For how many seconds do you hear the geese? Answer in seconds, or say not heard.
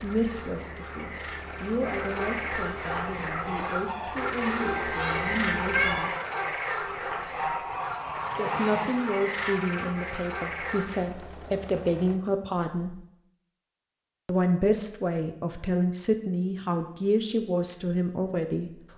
7 s.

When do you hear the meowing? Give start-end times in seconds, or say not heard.
4.5-6.0.